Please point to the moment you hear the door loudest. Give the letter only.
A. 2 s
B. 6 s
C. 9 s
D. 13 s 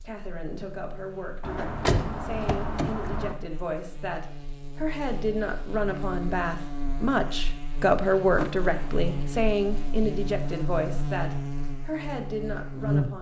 A.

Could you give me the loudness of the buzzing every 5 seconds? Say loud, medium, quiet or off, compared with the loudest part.
quiet, medium, loud.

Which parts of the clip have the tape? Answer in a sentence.
The tape can't be heard in this clip.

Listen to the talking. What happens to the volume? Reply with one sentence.
The loudness of the talking goes up, then down.